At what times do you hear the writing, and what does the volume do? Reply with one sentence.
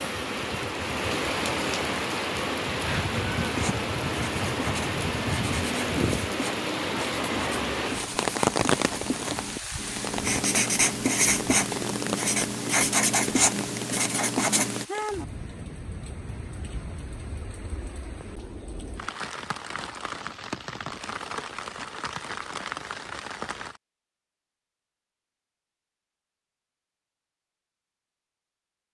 The writing can be heard from 3.4 to 14.8 s, getting louder.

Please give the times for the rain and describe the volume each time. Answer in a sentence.
You can hear the rain from 0.0 to 23.8 s, getting quieter.